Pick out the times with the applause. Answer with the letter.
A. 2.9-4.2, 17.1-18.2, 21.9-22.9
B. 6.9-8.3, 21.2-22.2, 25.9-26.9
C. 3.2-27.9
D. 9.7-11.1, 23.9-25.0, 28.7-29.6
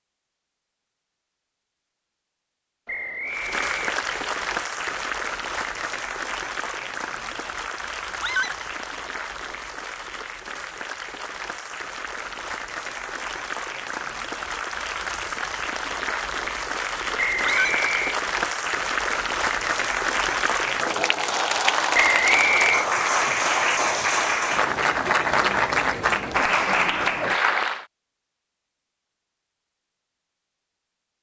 C.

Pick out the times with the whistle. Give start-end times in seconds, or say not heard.
2.9-4.2, 17.1-18.2, 21.9-22.9.